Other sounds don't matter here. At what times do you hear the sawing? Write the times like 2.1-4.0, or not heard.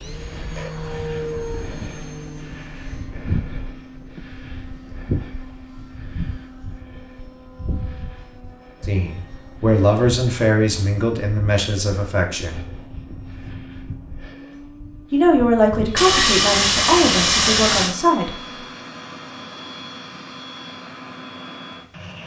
15.9-17.9.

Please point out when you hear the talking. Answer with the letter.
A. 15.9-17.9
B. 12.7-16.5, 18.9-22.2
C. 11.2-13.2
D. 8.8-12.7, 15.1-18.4
D.